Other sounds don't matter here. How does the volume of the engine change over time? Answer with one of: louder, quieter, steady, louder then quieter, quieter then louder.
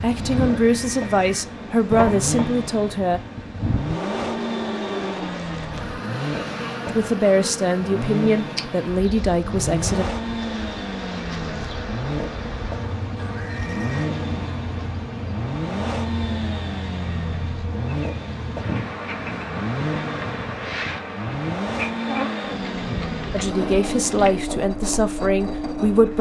steady.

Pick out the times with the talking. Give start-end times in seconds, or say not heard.
0.0-3.2, 6.8-10.1, 23.3-26.1.